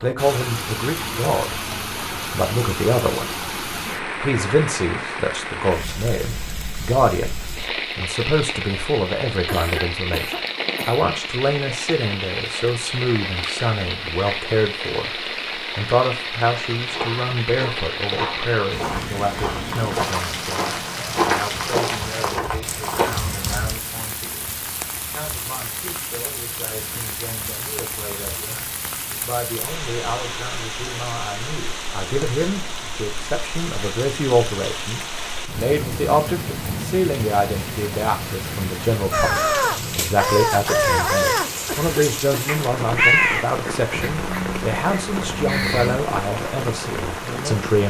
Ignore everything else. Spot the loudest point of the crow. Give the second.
43 s.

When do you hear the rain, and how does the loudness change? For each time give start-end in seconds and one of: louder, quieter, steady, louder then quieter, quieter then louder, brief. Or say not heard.
0.0-47.8 steady.